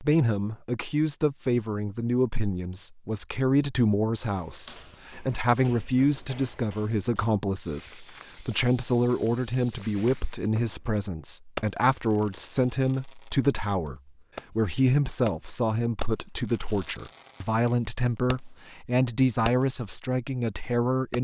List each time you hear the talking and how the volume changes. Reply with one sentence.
You can hear the talking from 0.0 to 21.1 s, at a steady volume.